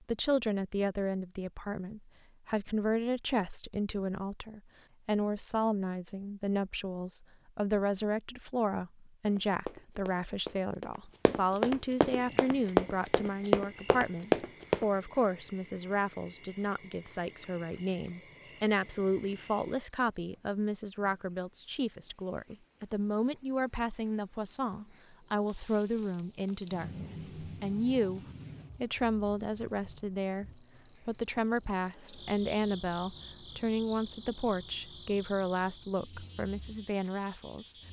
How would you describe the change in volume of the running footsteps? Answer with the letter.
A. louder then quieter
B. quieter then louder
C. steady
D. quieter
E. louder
E.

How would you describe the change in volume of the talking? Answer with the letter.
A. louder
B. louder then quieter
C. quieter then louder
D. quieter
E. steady
E.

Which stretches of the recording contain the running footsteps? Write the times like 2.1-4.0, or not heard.
9.2-14.8.